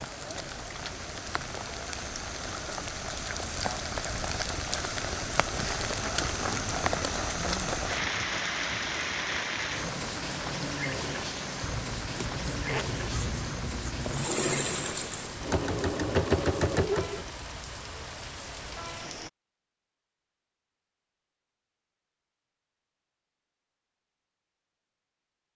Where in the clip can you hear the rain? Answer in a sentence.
You can hear the rain from 0.0 to 19.3 s.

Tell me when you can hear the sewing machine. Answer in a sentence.
The sewing machine can be heard from 14.1 to 17.2 s.